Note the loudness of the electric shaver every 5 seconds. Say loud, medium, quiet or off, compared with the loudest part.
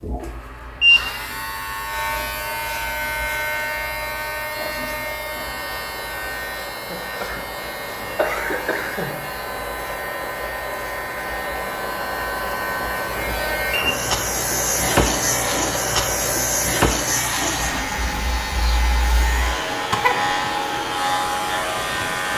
loud, medium, loud, loud, loud.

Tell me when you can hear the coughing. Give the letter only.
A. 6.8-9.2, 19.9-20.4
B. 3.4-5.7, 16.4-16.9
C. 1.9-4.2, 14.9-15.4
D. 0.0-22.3
A.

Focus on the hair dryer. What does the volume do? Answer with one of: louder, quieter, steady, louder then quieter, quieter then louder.
louder.